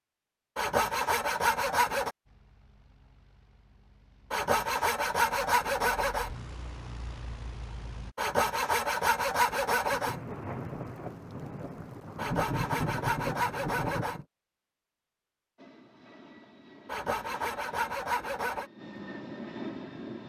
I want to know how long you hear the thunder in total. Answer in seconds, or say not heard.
4 s.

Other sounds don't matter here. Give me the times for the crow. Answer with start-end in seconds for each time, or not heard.
not heard.